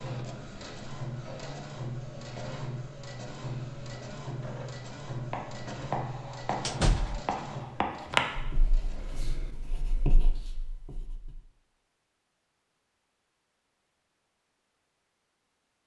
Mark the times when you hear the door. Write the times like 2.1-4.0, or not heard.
6.7-7.2.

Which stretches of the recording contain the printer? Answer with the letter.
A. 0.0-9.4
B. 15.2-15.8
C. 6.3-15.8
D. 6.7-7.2
A.